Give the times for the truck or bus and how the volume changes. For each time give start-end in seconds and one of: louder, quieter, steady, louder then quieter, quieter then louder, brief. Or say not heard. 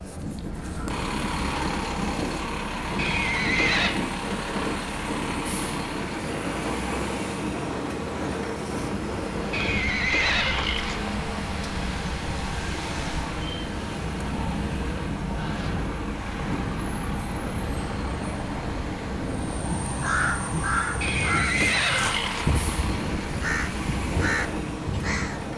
0.0-25.5 steady.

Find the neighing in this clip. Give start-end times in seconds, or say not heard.
3.0-4.0, 9.5-11.2, 21.0-22.6.